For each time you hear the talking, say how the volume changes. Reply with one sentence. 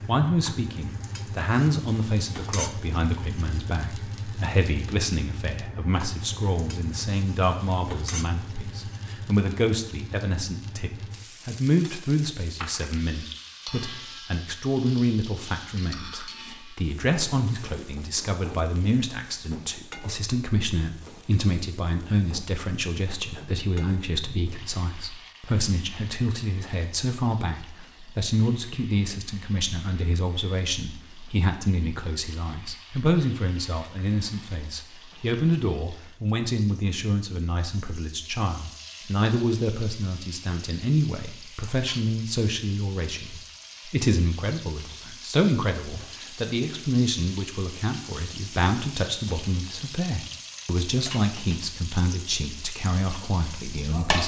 You can hear the talking from 0.1 to 54.2 s, at a steady volume.